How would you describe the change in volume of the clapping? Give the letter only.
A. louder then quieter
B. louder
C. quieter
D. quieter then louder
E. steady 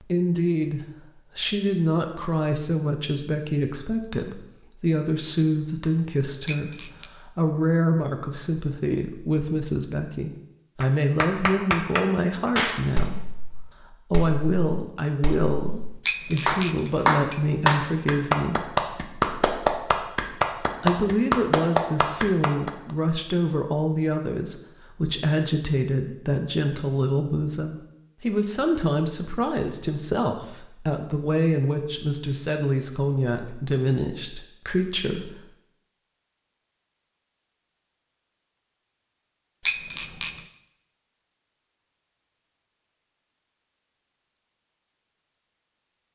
D.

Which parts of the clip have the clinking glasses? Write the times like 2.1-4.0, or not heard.
6.5-7.1, 16.1-18.1, 39.6-40.5.